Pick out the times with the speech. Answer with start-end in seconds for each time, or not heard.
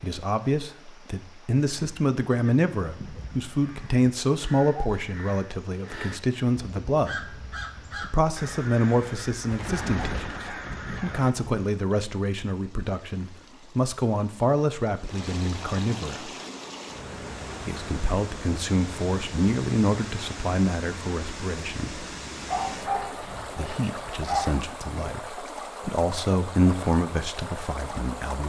0.0-16.3, 17.6-22.1, 23.6-28.4.